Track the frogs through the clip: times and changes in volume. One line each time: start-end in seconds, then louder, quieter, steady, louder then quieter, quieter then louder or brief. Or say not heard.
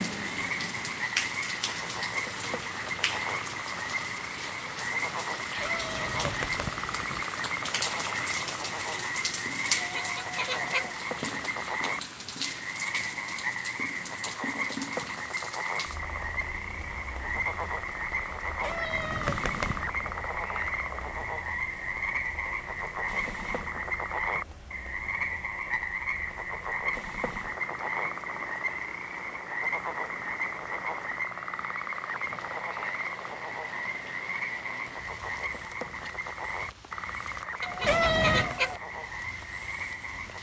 0.0-40.3 steady.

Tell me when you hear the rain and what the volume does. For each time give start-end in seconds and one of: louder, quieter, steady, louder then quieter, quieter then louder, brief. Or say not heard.
0.0-40.3 quieter.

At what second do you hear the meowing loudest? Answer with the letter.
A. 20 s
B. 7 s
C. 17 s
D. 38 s
D.